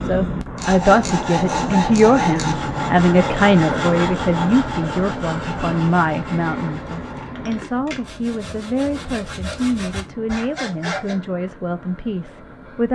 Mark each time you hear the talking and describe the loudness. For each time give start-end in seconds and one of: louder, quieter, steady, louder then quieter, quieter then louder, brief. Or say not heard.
0.0-12.9 quieter.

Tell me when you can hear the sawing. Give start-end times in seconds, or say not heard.
0.6-11.2.